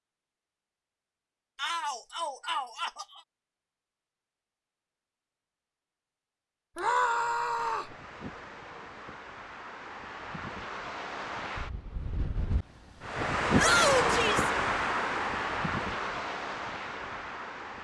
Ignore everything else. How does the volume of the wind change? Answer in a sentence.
The loudness of the wind goes up, then down.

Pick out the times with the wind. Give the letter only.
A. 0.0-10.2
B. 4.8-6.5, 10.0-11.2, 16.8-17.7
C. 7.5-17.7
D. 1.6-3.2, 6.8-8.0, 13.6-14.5
C.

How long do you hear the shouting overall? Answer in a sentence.
The shouting can be heard for 4 seconds in total.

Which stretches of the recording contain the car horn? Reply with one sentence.
You can't hear the car horn here.